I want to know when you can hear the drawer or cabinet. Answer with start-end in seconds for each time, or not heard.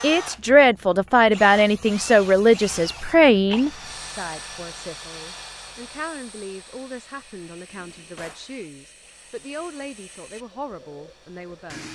7.7-8.5.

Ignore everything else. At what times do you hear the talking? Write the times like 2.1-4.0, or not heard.
0.0-11.8.